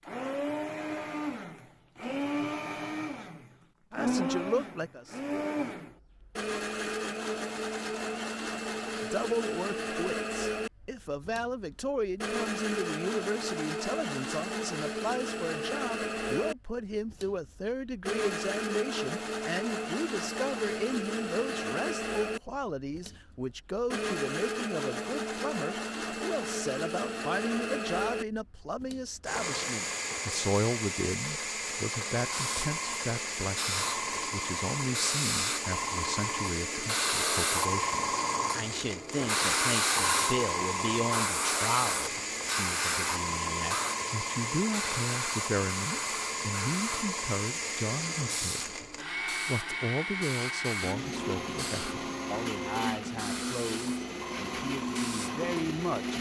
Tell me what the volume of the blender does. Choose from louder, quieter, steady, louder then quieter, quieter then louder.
steady.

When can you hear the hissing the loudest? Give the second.
40 s.